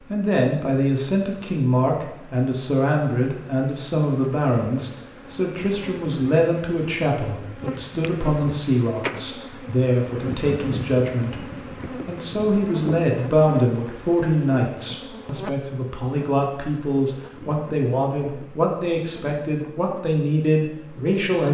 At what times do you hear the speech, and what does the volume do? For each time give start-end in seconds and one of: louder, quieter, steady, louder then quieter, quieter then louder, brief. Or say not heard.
0.0-21.4 steady.